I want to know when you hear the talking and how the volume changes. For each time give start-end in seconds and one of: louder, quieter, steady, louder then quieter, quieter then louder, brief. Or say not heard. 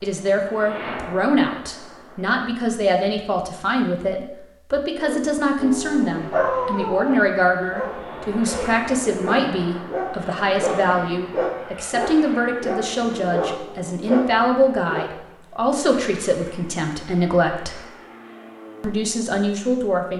0.0-17.8 steady
18.8-20.1 brief.